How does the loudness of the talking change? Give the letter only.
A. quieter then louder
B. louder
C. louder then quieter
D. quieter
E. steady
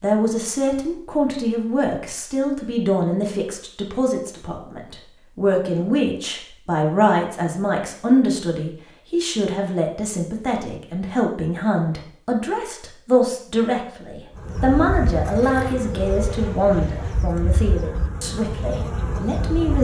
E.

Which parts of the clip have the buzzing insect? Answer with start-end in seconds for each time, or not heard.
14.3-19.7.